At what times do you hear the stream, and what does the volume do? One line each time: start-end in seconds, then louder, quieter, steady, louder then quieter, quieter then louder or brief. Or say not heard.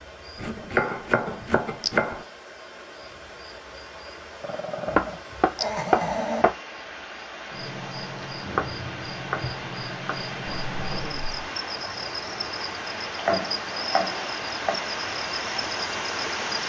0.0-16.6 louder.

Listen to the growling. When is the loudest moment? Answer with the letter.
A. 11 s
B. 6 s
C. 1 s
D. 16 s
B.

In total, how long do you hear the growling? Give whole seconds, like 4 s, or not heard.
3 s.